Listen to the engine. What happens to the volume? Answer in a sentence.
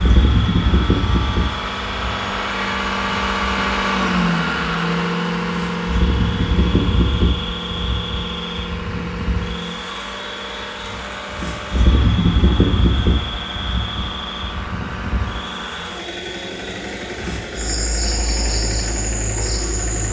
The volume of the engine goes down.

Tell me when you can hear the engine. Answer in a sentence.
You can hear the engine from 0.0 to 20.0 s.